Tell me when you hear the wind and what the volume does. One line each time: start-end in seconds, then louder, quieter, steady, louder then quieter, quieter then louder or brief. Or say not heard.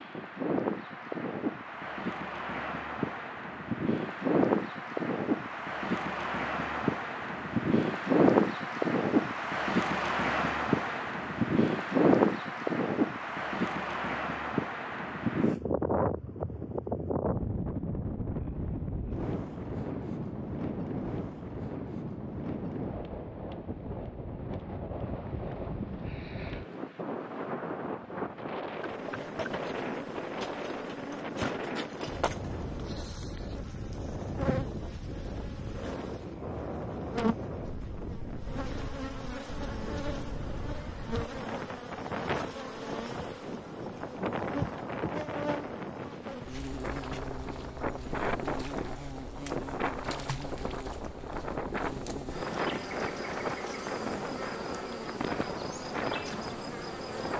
0.0-57.3 quieter.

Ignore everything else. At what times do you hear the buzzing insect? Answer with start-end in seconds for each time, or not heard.
28.8-57.3.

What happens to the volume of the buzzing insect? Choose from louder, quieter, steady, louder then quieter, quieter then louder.
steady.